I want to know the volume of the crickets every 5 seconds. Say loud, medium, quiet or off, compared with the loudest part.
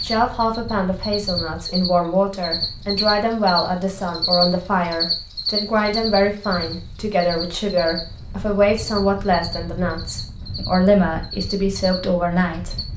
loud, loud, medium.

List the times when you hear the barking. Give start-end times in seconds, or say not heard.
not heard.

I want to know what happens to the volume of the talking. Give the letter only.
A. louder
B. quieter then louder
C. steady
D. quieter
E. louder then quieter
C.